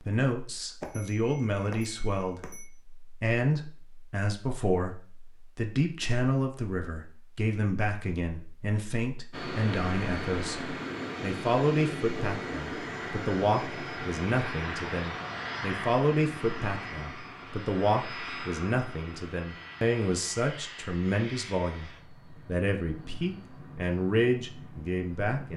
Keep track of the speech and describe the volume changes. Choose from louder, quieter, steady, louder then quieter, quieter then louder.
steady.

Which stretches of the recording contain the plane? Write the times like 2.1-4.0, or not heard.
9.3-25.5.